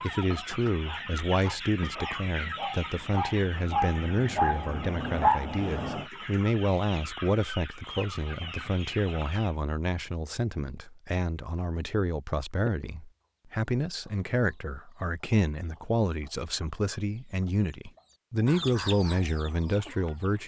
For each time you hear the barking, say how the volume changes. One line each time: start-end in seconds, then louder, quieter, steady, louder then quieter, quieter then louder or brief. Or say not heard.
0.0-6.0 louder.